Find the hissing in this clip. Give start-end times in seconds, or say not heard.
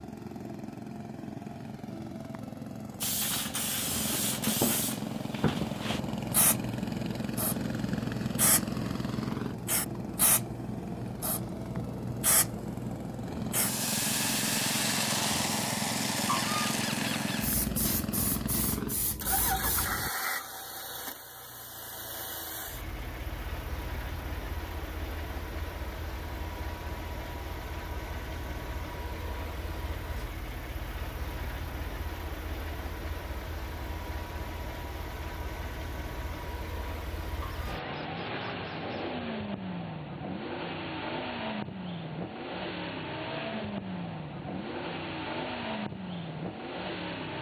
3.0-20.1.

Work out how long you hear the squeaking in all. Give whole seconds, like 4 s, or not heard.
3 s.